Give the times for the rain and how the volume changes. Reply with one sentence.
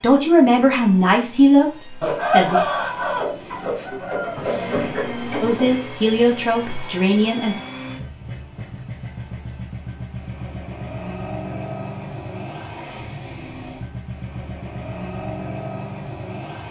The rain can't be heard in this clip.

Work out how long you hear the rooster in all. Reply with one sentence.
You can hear the rooster for 4 seconds altogether.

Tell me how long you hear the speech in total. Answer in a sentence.
The speech can be heard for 5 seconds in total.